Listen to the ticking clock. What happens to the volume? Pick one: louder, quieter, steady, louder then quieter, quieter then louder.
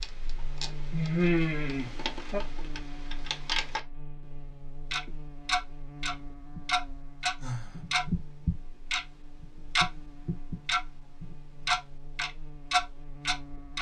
louder.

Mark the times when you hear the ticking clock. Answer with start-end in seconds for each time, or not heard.
0.0-3.8, 4.9-13.7.